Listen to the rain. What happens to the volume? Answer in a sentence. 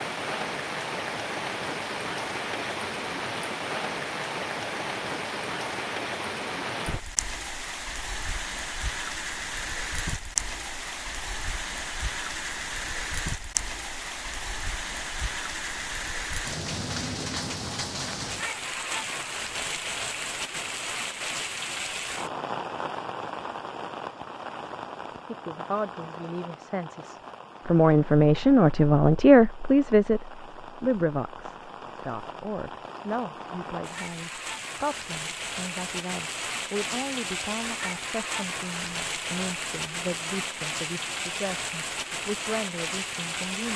The volume of the rain goes down, then up.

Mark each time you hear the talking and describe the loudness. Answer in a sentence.
You can hear the talking from 25.2 to 43.7 s, getting quieter.